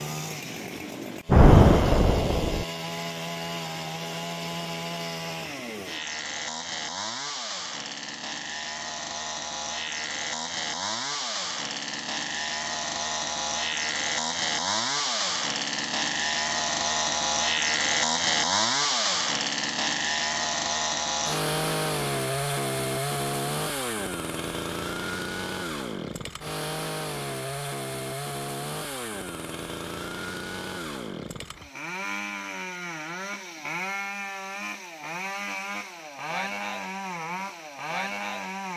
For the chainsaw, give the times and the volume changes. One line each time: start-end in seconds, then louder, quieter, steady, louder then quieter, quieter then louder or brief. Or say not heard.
0.0-38.7 louder then quieter.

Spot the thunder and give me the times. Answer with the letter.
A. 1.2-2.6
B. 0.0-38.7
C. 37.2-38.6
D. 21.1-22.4
A.